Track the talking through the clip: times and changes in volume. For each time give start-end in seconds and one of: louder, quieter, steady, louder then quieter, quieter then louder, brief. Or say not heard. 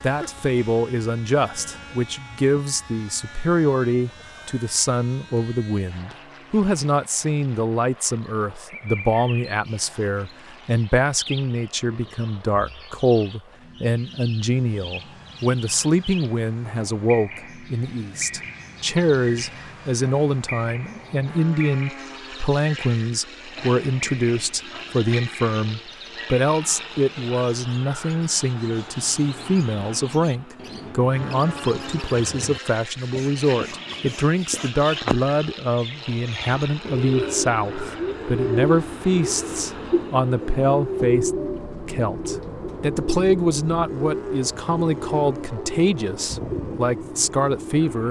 0.0-48.0 steady.